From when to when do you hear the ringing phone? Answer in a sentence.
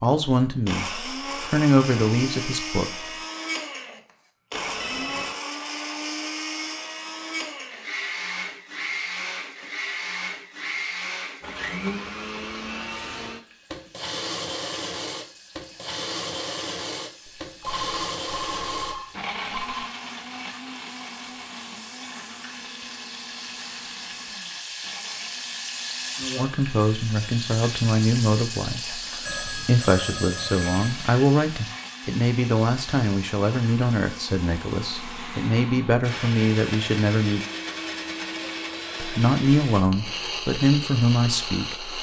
The ringing phone can be heard from 4.5 to 5.4 s, from 17.2 to 19.9 s and from 29.2 to 31.0 s.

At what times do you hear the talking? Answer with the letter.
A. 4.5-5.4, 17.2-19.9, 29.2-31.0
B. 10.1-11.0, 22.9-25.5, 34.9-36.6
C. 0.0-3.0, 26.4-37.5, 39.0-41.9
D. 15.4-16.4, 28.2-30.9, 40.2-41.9
C.